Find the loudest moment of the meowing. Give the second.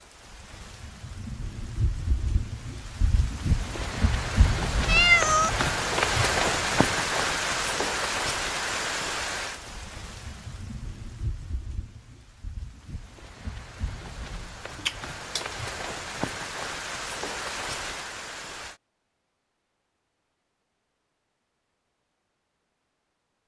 5 s.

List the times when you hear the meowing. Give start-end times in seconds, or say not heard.
4.8-5.5, 14.8-15.4.